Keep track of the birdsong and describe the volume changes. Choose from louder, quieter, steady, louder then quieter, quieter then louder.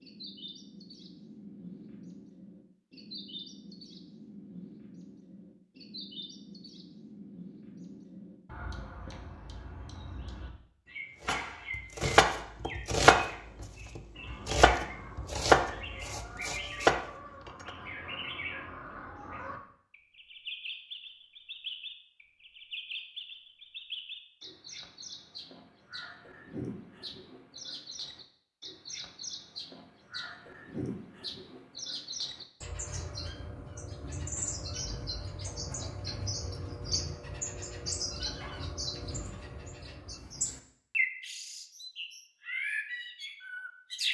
louder.